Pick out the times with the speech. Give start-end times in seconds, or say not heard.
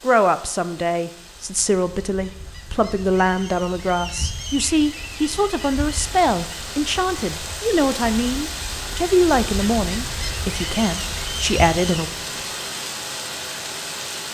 0.0-12.1.